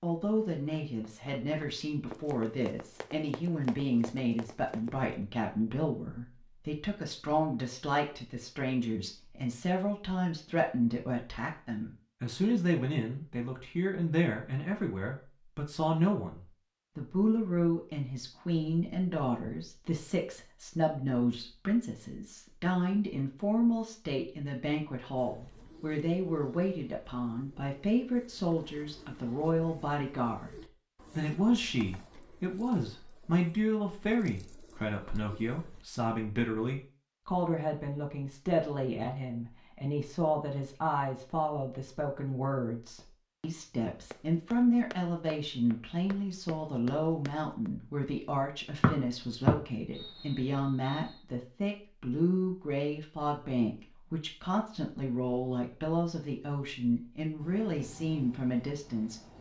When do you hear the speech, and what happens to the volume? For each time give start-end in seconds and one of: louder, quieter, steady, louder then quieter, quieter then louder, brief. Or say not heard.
0.0-59.3 steady.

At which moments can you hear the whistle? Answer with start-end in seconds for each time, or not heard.
48.8-51.2.